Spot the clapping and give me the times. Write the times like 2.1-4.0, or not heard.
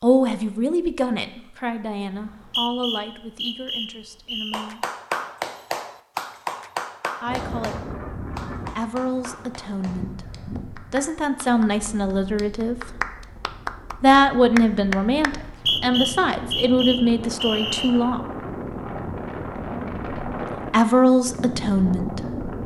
4.5-15.3.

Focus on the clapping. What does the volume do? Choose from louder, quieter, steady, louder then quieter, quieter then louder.
quieter then louder.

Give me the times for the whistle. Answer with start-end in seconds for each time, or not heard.
2.1-4.7, 15.3-17.9.